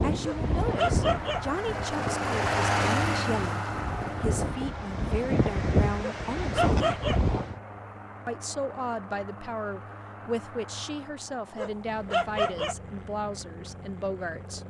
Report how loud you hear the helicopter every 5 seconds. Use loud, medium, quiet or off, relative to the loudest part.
loud, quiet, quiet.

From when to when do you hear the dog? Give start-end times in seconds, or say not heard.
0.2-1.4, 6.0-7.2, 11.6-12.8.